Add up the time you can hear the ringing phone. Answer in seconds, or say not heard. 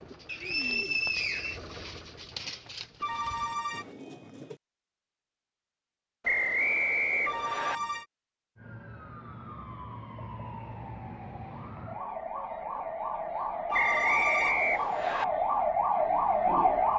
3 s.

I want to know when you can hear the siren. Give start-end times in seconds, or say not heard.
8.6-16.9.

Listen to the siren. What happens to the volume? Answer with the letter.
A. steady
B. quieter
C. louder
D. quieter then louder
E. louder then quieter
C.